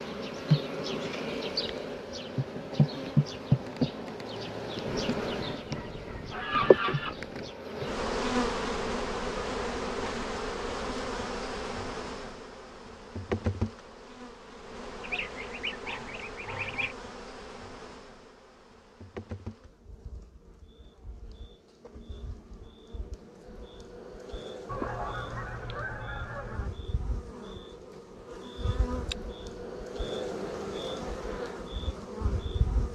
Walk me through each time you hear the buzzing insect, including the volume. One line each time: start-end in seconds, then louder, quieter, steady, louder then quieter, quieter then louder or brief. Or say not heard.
0.0-32.9 quieter then louder.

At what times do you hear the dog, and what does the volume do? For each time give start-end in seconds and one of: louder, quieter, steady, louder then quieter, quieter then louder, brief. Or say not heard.
not heard.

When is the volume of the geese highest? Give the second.
7 s.